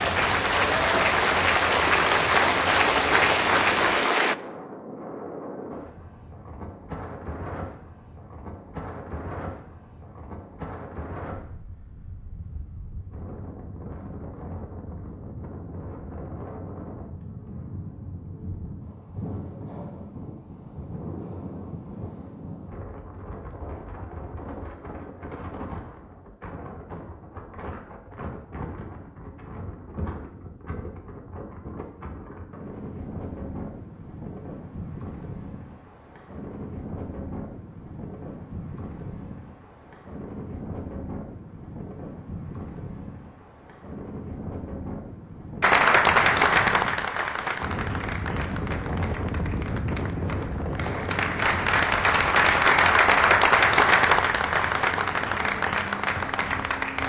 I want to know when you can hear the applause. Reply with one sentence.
The applause can be heard from 0.0 to 4.3 s and from 45.6 to 57.0 s.